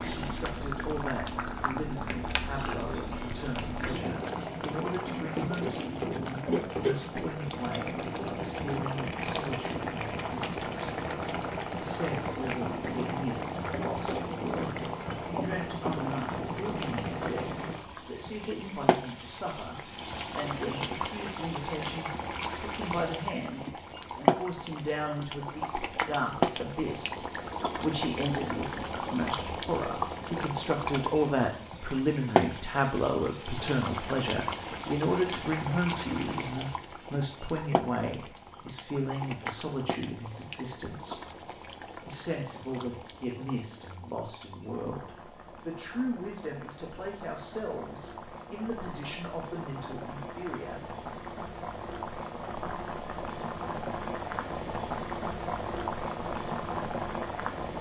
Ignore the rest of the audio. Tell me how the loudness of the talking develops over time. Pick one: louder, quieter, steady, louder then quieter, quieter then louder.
louder then quieter.